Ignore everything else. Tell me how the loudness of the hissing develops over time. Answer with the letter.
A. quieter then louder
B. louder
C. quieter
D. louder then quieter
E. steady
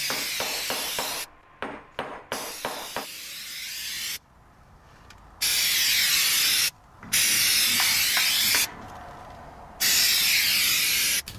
B.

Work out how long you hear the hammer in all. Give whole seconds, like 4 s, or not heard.
5 s.